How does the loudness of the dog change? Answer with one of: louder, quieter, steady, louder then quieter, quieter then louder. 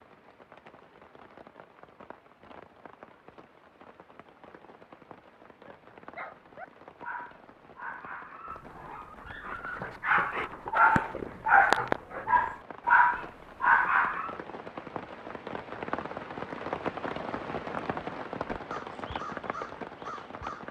louder.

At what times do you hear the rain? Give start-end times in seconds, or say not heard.
0.0-20.6.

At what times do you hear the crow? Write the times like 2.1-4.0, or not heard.
18.5-20.6.